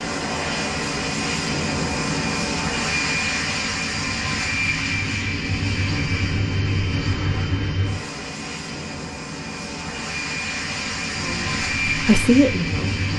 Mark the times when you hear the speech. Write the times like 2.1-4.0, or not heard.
11.2-13.1.